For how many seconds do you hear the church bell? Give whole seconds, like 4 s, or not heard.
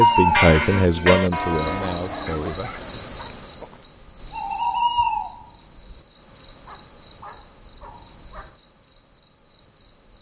2 s.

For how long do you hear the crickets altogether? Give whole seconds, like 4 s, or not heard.
10 s.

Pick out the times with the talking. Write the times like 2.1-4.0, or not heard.
0.0-2.9.